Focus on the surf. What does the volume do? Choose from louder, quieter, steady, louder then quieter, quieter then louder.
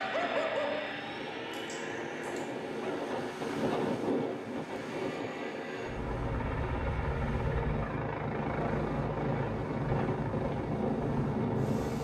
louder then quieter.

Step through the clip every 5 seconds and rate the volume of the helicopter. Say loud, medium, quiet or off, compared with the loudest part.
medium, loud, loud.